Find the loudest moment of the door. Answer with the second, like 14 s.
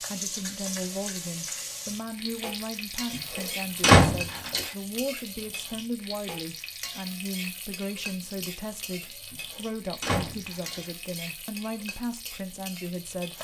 4 s.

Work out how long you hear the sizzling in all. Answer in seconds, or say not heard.
13 s.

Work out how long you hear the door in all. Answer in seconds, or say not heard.
3 s.